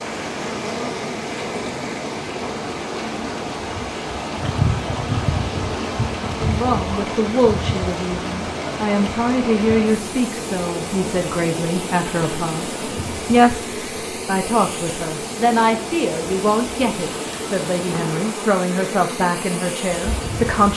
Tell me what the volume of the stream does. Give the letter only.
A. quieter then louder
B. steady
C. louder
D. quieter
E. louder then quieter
B.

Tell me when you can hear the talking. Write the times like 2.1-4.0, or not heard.
6.4-20.7.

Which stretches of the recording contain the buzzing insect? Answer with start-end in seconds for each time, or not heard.
0.0-20.7.